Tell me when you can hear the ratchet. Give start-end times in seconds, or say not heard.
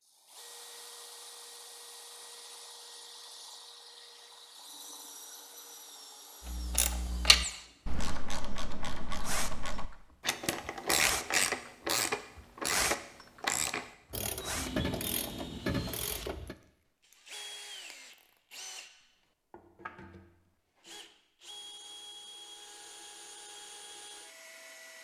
6.5-16.6.